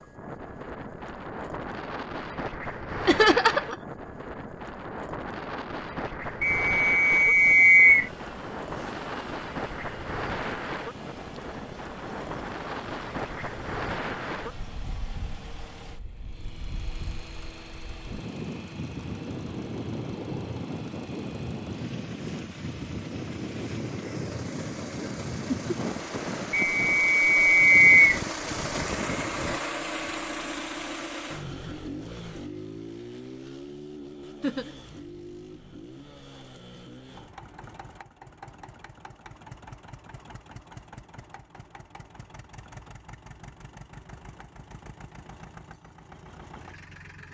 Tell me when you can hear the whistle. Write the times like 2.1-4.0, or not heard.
6.4-8.1, 26.5-28.2.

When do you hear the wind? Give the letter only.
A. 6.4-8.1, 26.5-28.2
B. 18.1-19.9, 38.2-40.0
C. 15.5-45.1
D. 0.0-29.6
D.